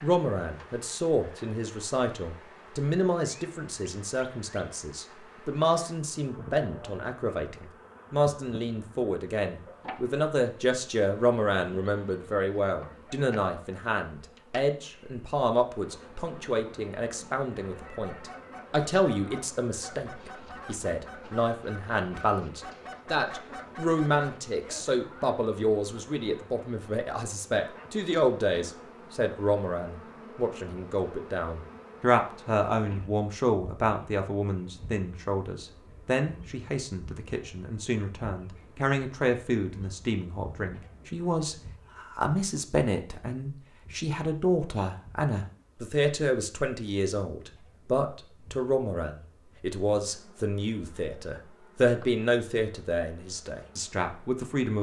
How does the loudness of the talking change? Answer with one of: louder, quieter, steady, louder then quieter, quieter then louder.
steady.